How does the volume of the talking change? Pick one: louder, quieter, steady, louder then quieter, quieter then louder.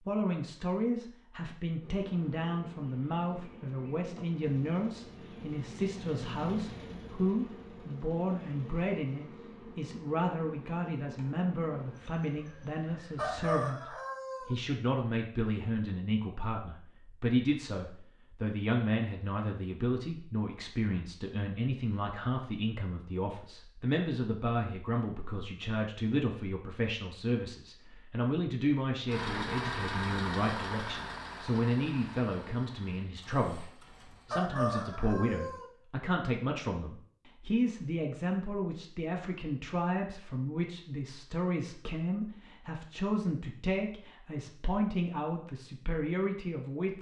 steady.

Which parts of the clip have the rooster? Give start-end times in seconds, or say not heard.
13.2-14.6, 34.2-35.7.